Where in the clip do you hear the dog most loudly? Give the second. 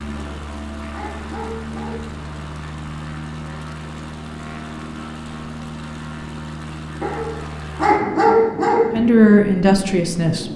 8 s.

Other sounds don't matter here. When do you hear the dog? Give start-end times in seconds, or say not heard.
0.1-2.3, 7.0-9.0.